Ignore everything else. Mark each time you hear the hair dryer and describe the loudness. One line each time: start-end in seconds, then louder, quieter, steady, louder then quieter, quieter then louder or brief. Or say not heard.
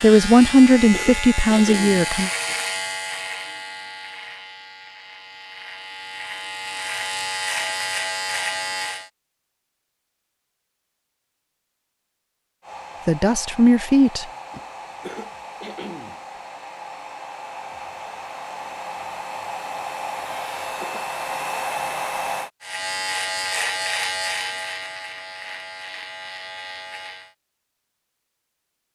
12.6-22.5 louder.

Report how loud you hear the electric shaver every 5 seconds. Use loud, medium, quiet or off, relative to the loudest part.
loud, loud, off, off, loud, medium.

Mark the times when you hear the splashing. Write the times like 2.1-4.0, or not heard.
not heard.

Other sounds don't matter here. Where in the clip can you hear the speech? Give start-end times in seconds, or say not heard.
0.0-2.3, 13.1-14.2.